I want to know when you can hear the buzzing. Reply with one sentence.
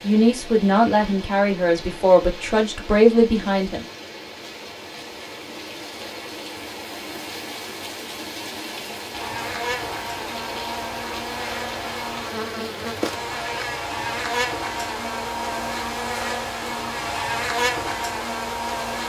You can hear the buzzing from 9.1 to 19.0 s.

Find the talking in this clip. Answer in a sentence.
You can hear the talking from 0.0 to 3.9 s.